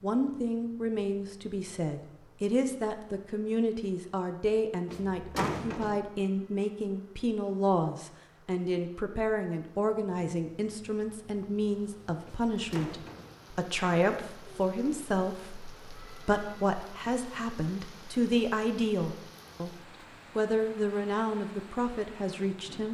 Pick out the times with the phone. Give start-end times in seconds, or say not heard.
not heard.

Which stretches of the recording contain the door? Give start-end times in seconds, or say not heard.
4.8-6.0, 12.2-13.3.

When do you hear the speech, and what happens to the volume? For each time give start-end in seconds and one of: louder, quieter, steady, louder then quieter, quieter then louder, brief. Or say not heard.
0.0-19.8 steady
20.4-22.8 brief.